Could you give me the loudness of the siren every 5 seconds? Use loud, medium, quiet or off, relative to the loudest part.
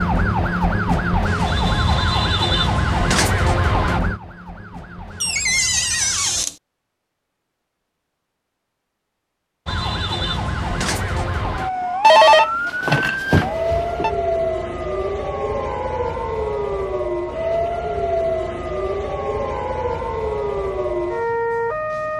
loud, medium, loud, loud, loud.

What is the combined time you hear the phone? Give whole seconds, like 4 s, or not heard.
2 s.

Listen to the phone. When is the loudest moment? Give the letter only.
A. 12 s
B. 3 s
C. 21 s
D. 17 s
A.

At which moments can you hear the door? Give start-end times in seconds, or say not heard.
5.2-6.5.